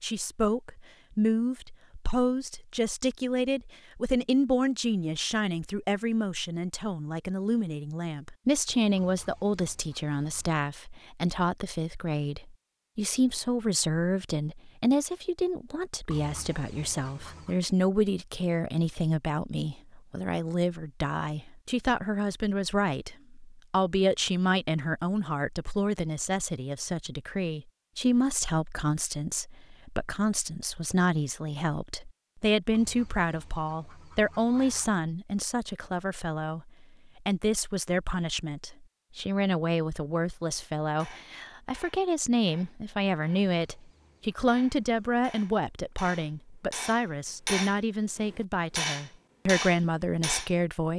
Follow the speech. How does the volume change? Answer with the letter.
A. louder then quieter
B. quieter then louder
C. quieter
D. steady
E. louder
D.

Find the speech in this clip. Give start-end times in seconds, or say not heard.
0.0-50.9.